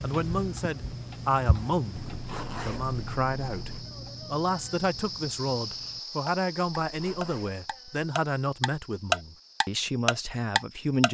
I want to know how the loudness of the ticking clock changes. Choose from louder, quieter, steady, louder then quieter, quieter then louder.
quieter then louder.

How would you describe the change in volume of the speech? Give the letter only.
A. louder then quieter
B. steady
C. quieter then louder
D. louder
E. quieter
B.